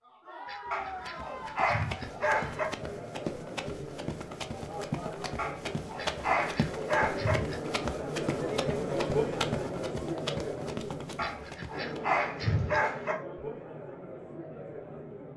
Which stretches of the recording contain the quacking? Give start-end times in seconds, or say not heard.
0.5-2.5, 6.0-7.6, 11.2-12.8.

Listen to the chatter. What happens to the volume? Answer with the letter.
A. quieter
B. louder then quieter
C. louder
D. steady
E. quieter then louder
B.